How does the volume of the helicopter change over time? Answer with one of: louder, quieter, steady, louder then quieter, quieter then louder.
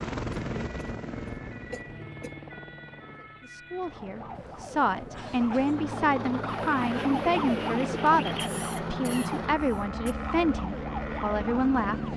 quieter then louder.